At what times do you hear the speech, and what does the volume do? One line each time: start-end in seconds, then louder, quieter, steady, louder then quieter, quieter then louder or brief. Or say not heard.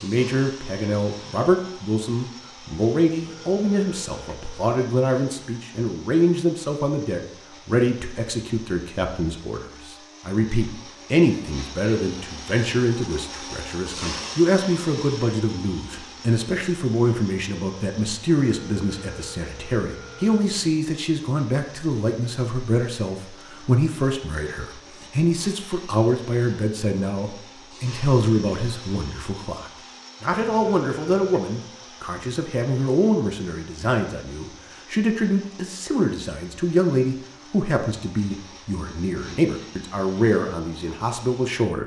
0.0-41.8 steady.